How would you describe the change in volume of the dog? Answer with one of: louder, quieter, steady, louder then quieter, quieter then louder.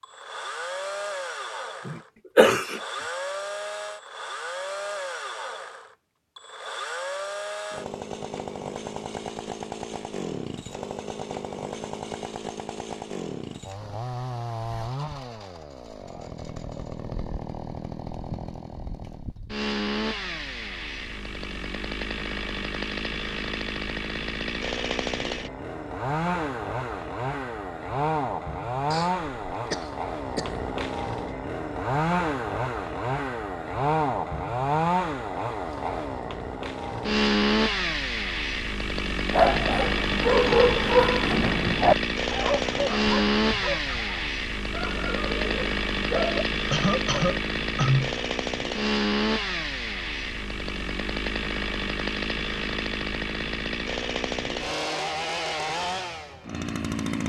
quieter.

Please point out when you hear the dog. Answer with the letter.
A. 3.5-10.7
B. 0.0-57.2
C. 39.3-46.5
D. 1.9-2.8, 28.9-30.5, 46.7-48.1
C.